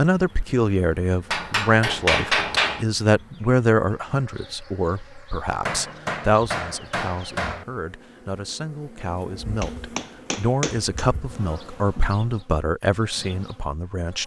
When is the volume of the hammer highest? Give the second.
2 s.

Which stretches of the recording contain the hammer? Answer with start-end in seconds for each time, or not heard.
1.3-2.9, 5.7-7.7, 9.6-11.1.